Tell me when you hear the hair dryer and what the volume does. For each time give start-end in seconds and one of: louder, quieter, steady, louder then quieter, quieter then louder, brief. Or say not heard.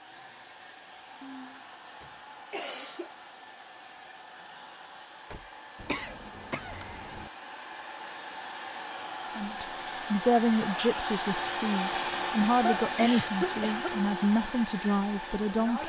0.0-15.8 louder.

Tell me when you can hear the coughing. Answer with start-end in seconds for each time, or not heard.
1.2-3.1, 5.8-7.3, 12.6-14.0.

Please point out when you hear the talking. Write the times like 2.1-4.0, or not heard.
9.3-15.8.